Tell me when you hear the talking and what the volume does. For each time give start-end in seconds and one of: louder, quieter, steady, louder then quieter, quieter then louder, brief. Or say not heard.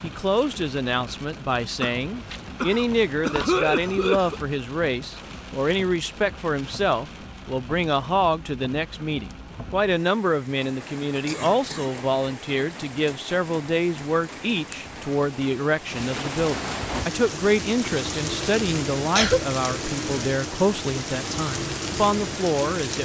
0.0-22.9 steady.